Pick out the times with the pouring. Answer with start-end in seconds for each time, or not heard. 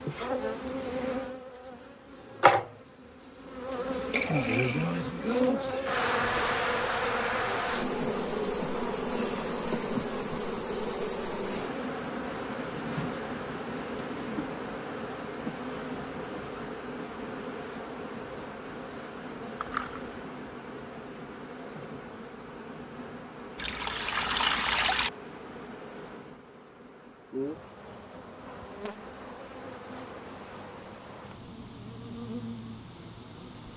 4.1-5.0, 19.6-20.2, 23.6-25.1.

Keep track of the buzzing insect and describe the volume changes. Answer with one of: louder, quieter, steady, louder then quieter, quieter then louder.
quieter.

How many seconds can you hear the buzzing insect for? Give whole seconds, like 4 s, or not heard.
34 s.